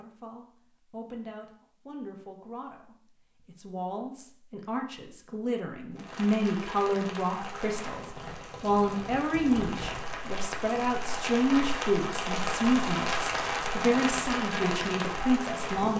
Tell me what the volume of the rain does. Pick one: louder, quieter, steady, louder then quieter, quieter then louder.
louder.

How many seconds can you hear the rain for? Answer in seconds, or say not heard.
10 s.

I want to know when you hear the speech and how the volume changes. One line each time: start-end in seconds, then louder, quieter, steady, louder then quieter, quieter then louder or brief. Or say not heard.
0.0-15.9 louder.